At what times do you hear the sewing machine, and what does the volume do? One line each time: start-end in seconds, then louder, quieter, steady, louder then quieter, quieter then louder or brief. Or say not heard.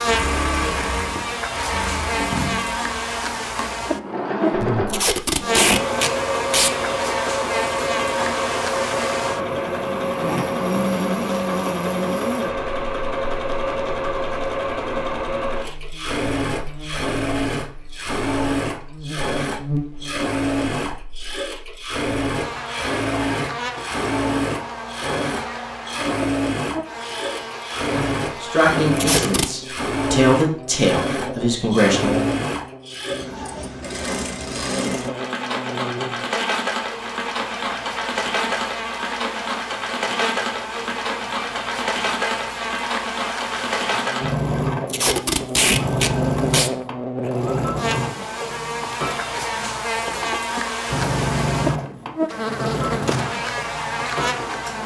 0.0-54.8 steady.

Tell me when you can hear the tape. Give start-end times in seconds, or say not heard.
4.8-6.7, 28.9-29.5, 44.9-46.7.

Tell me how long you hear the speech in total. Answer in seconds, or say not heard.
4 s.